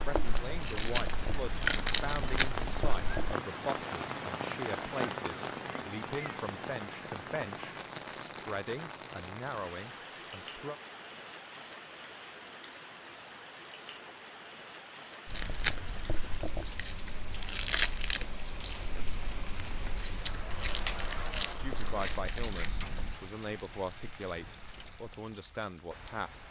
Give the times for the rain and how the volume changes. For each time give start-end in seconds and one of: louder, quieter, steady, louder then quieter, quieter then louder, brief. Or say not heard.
0.0-26.4 quieter.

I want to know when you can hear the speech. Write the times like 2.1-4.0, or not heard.
0.1-10.8, 21.4-26.4.